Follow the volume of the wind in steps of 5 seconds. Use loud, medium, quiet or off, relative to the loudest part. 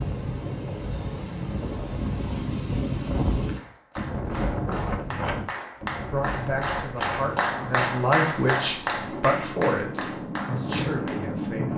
loud, medium, loud.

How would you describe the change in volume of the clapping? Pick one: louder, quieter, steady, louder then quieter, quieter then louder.
louder then quieter.